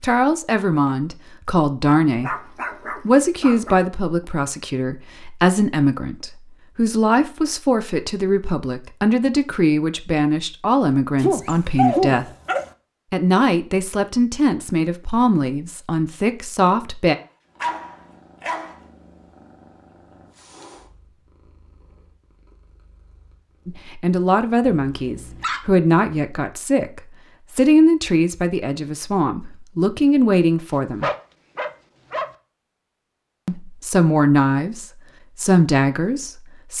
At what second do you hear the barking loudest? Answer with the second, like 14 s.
12 s.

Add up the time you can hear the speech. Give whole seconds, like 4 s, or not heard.
26 s.